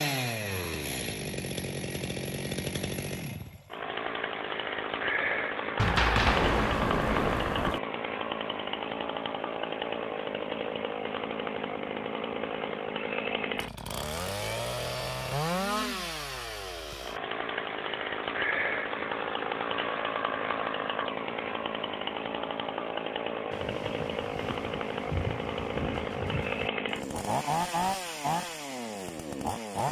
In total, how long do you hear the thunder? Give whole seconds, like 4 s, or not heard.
5 s.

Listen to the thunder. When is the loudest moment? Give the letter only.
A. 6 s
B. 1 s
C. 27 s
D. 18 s
A.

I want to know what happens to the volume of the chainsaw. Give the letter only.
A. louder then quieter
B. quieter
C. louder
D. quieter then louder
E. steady
E.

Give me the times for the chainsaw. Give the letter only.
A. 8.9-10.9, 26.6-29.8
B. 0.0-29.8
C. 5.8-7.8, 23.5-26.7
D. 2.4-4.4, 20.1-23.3
B.